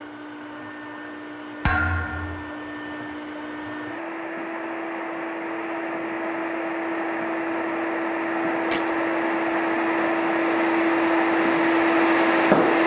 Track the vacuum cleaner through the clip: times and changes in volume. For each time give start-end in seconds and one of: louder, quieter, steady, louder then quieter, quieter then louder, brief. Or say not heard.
0.0-12.8 louder.